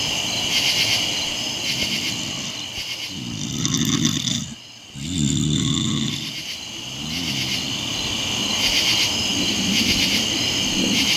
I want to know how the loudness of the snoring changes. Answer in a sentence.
The loudness of the snoring goes up, then down.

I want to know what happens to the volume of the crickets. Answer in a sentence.
The volume of the crickets goes down, then up.